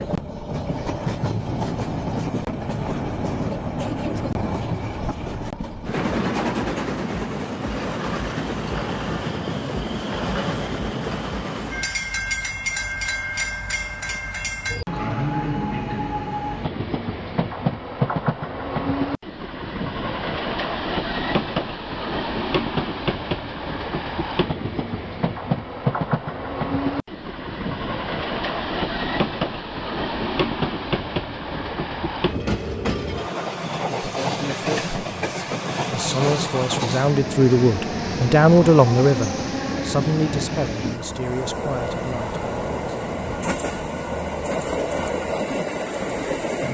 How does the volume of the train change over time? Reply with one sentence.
The volume of the train stays about the same.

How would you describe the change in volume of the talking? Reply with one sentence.
The volume of the talking goes up, then down.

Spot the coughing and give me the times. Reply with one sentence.
The coughing can't be heard in this clip.